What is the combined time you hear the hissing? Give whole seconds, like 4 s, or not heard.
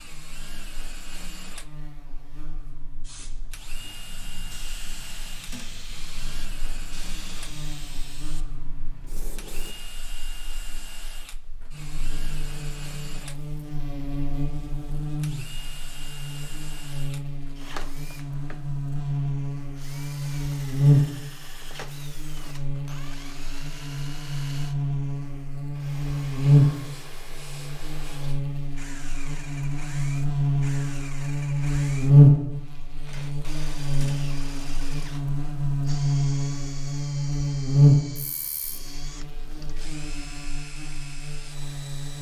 7 s.